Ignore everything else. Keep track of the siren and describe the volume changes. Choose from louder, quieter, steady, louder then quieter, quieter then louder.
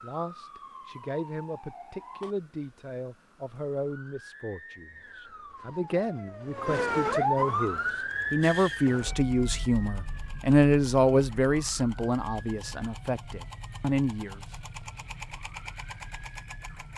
louder then quieter.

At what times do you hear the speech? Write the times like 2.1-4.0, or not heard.
0.0-14.6.